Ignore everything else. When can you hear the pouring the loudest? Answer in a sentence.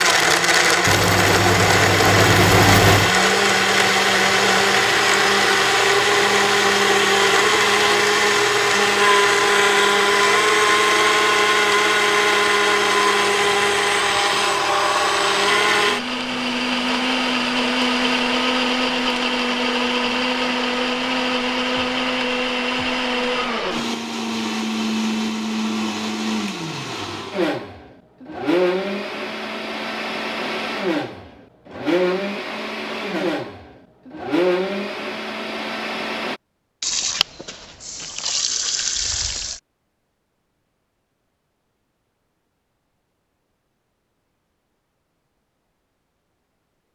The loudest moment of the pouring is at 3 seconds.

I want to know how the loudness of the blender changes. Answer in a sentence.
The volume of the blender goes down.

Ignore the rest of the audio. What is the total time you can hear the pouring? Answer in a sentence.
You can hear the pouring for 5 seconds altogether.